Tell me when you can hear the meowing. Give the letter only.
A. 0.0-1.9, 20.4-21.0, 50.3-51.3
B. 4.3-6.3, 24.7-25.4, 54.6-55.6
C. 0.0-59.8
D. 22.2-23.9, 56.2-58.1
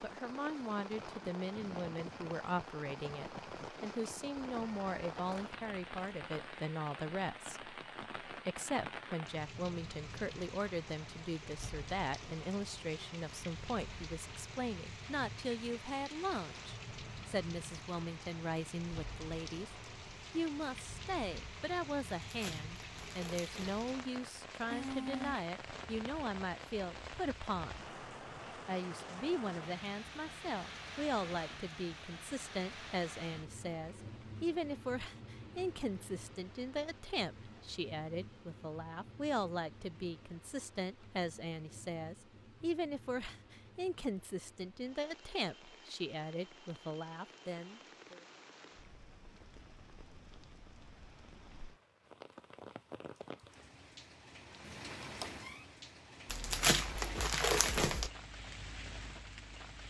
B.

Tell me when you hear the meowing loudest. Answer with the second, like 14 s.
25 s.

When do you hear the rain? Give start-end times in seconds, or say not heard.
0.0-59.8.